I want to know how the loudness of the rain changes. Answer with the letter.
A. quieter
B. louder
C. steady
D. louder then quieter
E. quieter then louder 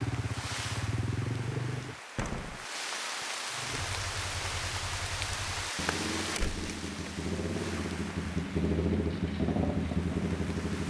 D.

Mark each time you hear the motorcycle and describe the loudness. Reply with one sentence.
The motorcycle can be heard briefly from 0.0 to 1.9 s; and from 3.5 to 10.8 s, getting louder.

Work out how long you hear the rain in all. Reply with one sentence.
You can hear the rain for 11 seconds altogether.